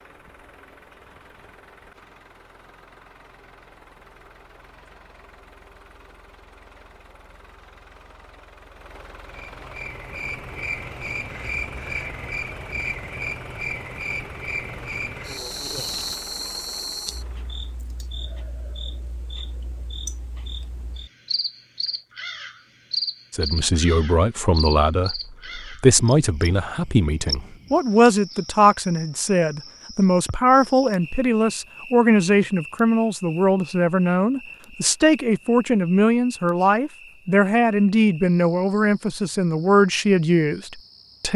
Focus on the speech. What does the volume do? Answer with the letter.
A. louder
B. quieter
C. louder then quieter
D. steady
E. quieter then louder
D.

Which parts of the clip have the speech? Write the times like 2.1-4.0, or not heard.
23.3-41.3.